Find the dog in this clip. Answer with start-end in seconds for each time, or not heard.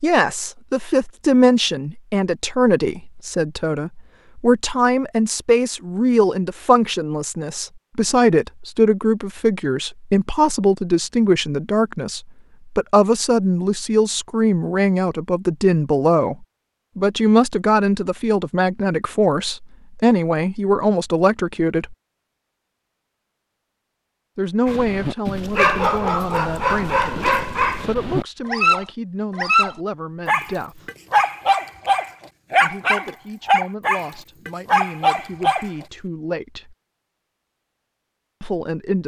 24.6-35.7.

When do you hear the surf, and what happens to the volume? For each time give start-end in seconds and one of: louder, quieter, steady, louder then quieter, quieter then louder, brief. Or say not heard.
not heard.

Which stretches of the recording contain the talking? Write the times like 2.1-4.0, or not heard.
0.0-21.9, 24.4-30.9, 32.6-36.8, 38.4-39.0.